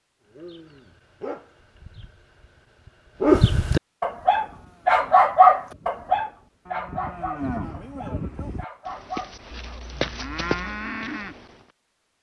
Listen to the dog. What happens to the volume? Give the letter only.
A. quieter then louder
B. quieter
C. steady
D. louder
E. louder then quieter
E.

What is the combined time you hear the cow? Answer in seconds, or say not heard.
7 s.